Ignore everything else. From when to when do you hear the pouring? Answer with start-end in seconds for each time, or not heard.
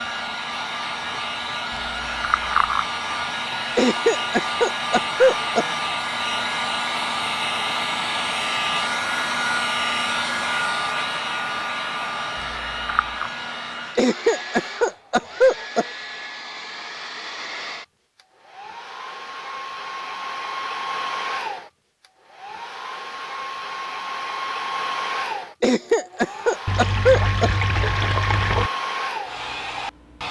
1.7-2.9, 12.3-13.3, 26.6-28.7.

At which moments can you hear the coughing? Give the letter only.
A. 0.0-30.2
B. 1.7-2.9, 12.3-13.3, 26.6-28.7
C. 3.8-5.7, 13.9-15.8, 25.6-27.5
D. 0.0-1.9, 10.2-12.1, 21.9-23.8
C.